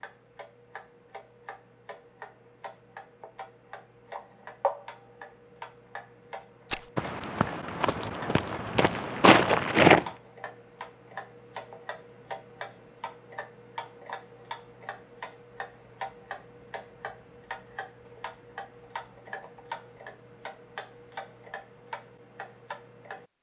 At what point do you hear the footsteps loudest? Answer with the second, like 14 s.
10 s.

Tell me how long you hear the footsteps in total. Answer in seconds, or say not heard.
3 s.